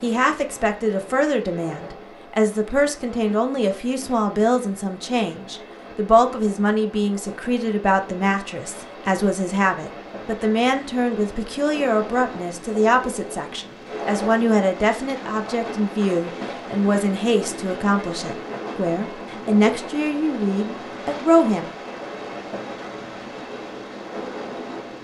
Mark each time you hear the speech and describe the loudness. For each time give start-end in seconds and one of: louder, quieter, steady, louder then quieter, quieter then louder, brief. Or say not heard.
0.0-21.7 steady.